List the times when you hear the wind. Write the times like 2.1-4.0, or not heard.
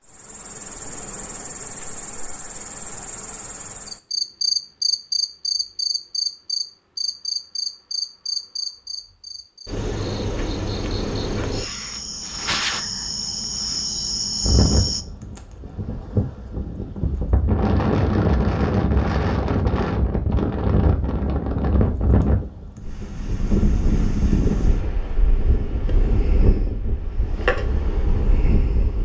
14.4-29.0.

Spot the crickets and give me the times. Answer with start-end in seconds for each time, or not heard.
0.0-15.1.